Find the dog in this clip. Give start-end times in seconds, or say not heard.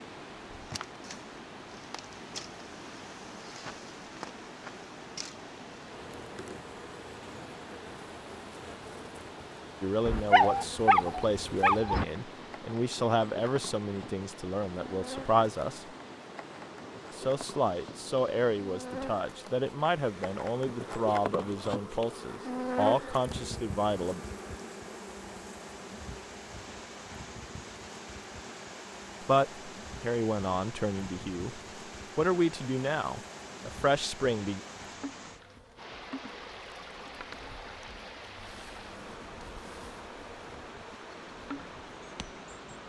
10.1-12.1.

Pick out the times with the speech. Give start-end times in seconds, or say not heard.
9.8-15.8, 17.1-24.2, 29.2-34.6.